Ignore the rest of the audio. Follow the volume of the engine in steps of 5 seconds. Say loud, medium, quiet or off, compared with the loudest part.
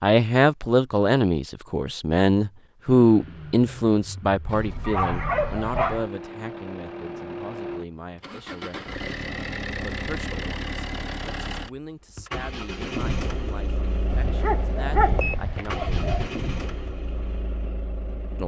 medium, loud, loud, loud.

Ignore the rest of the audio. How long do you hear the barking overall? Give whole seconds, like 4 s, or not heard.
4 s.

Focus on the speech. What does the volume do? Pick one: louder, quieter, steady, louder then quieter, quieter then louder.
quieter.